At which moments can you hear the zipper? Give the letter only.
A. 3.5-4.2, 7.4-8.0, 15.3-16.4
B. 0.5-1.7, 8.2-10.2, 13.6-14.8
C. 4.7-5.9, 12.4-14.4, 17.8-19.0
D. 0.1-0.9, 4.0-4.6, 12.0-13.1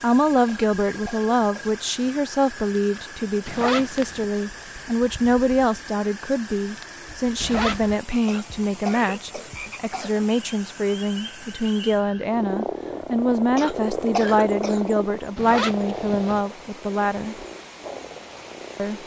A.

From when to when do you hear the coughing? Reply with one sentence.
The coughing can be heard from 0.5 to 1.7 s, from 8.2 to 10.2 s and from 13.6 to 14.8 s.